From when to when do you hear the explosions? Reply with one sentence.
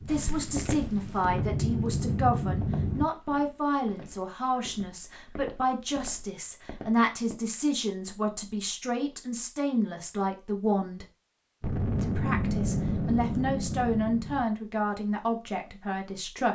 You can hear the explosions from 11.6 to 14.4 s.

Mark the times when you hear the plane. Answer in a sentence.
You can hear the plane from 0.0 to 3.0 s.